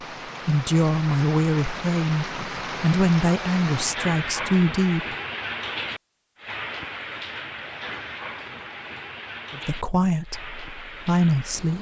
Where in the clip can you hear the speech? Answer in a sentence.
You can hear the speech from 0.5 to 5.2 s and from 9.5 to 11.7 s.